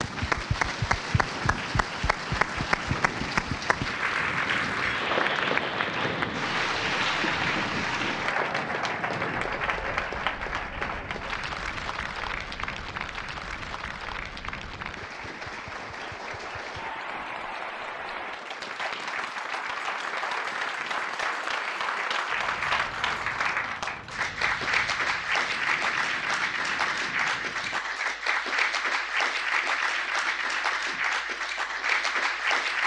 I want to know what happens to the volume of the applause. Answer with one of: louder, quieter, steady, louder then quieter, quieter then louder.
quieter then louder.